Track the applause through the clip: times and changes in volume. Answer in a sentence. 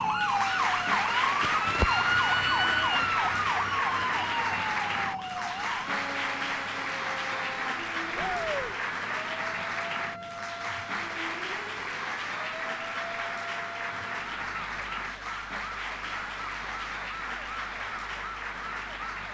You can hear the applause from 0.0 to 19.2 s, getting quieter.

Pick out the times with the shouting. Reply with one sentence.
You can hear the shouting from 8.2 to 8.8 s.